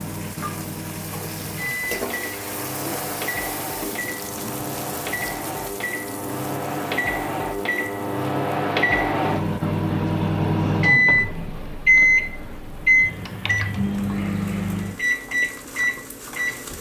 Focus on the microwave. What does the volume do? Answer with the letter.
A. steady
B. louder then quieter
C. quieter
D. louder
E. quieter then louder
B.